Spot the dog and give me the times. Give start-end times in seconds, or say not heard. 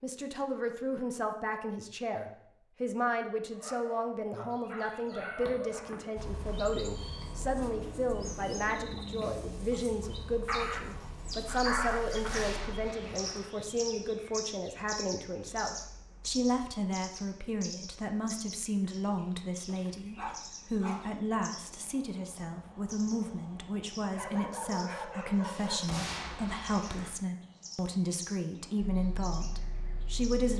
3.5-6.2, 10.4-12.4, 19.6-21.1, 24.1-26.0.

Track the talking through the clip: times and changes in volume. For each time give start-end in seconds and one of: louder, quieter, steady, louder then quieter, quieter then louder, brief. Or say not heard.
0.0-30.5 steady.